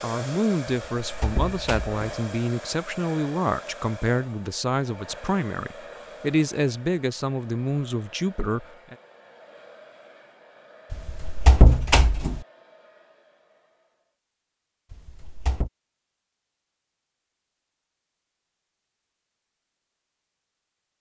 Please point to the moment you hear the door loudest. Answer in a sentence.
The volume of the door peaks at 12 seconds.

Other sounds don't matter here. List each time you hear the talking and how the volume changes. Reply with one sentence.
The talking can be heard from 0.0 to 8.9 s, at a steady volume.